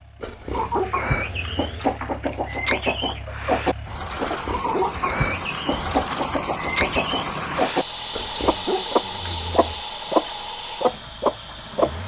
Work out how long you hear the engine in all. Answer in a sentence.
The engine can be heard for 12 seconds in total.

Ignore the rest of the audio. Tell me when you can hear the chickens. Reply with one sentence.
You can hear the chickens from 0.5 to 11.9 s.